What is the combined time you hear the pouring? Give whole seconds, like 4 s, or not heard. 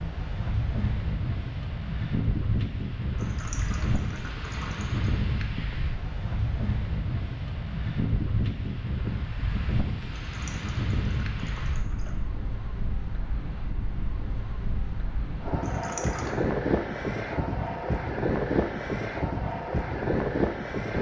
5 s.